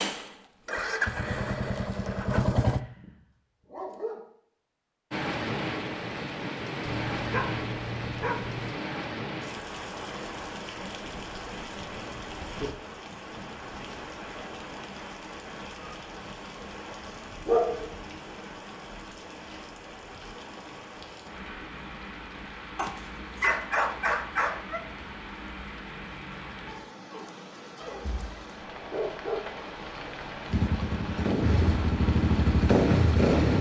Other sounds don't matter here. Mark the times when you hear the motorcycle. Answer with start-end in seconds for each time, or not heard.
0.0-2.8, 30.5-33.5.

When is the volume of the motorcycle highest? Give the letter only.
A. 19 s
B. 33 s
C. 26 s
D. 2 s
B.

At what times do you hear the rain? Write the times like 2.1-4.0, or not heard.
5.1-33.5.